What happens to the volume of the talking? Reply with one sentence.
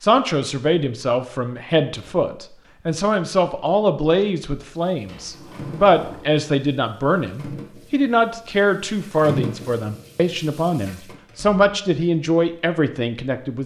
The volume of the talking stays about the same.